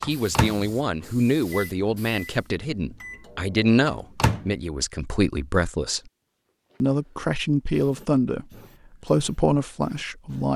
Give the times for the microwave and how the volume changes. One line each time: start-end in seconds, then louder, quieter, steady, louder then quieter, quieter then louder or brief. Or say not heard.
0.0-4.5 quieter.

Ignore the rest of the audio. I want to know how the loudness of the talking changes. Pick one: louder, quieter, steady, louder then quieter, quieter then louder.
steady.